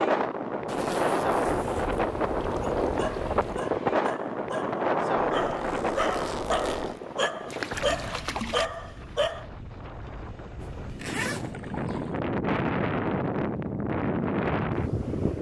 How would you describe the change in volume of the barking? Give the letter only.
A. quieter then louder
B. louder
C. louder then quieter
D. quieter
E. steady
B.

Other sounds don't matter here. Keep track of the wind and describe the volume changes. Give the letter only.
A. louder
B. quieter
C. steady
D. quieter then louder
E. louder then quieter
D.